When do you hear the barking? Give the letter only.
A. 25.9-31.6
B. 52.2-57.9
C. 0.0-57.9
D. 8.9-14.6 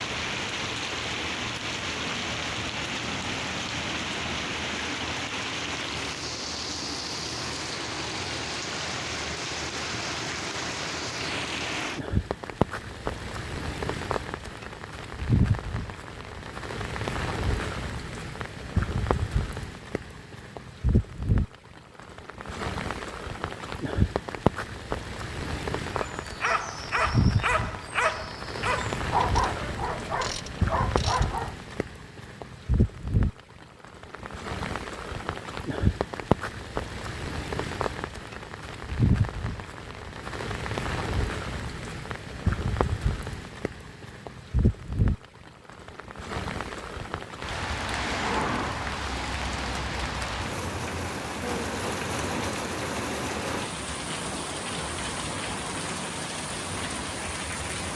A.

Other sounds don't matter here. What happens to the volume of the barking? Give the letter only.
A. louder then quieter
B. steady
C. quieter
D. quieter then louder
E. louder
B.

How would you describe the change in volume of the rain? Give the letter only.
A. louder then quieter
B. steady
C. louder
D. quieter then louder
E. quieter
B.